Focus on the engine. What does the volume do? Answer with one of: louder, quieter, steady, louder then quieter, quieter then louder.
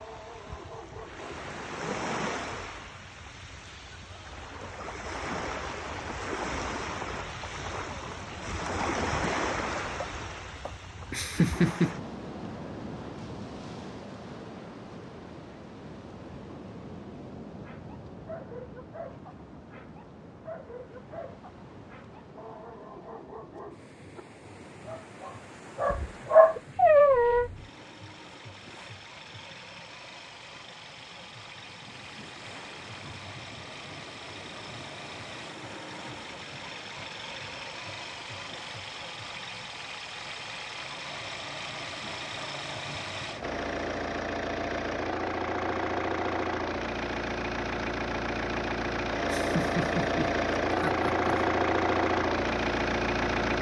louder.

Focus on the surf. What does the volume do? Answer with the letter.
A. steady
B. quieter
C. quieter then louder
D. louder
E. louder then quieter
B.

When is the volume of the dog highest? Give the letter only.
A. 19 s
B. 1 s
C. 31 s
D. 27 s
D.